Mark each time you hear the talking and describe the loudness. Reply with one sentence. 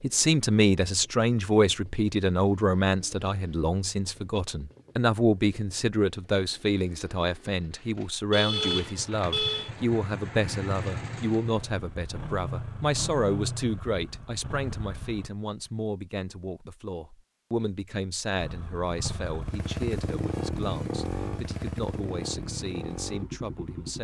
The talking can be heard from 0.0 to 23.9 s, getting quieter.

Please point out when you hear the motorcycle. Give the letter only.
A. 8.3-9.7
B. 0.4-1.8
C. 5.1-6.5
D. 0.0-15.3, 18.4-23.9
D.